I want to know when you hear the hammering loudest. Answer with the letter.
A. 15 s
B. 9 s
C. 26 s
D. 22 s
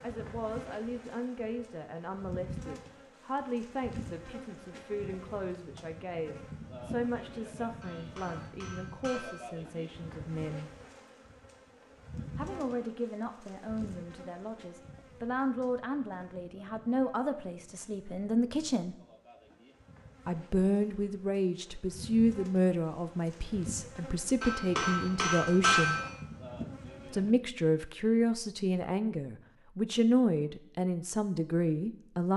C.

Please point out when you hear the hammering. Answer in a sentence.
You can hear the hammering from 7.8 to 9.5 s and from 24.4 to 26.1 s.